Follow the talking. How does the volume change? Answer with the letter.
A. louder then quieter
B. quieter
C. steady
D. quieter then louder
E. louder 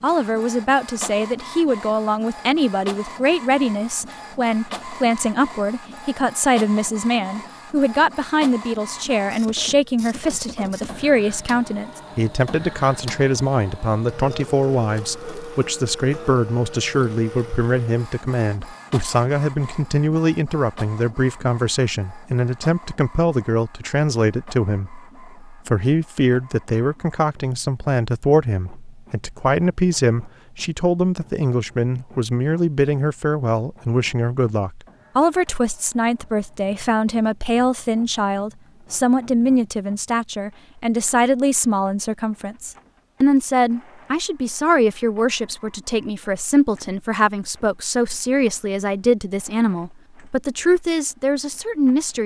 C.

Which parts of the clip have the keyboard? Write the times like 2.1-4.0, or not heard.
not heard.